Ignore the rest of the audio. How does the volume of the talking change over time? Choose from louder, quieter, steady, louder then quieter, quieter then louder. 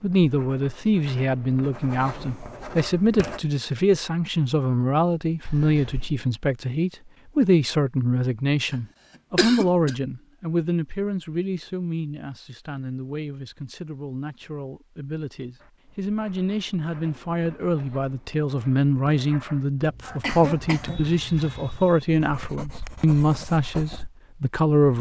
quieter then louder.